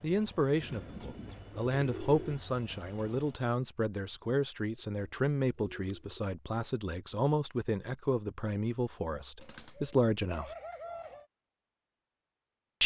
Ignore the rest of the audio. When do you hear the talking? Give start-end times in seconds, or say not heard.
0.0-10.6.